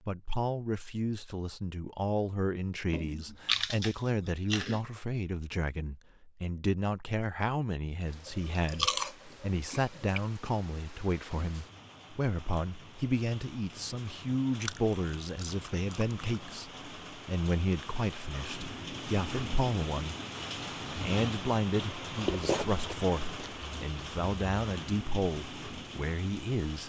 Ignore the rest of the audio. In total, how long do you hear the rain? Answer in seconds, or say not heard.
19 s.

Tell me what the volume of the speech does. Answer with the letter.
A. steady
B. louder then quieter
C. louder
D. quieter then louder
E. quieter
A.